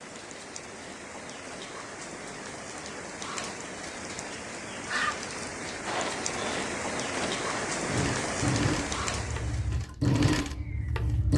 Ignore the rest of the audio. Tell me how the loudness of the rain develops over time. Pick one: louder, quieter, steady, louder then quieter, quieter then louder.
louder.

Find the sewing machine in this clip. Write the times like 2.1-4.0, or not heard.
5.8-11.3.